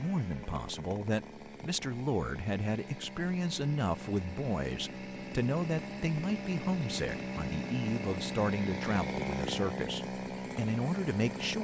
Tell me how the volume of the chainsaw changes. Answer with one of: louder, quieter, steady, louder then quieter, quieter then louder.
louder.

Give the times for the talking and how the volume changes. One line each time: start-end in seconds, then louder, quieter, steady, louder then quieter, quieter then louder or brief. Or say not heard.
0.0-11.5 steady.